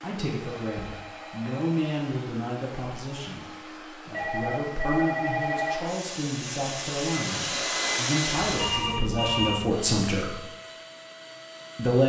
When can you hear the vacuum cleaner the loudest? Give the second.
8 s.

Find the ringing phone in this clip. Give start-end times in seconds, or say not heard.
0.4-1.9, 4.1-5.8, 8.4-9.8.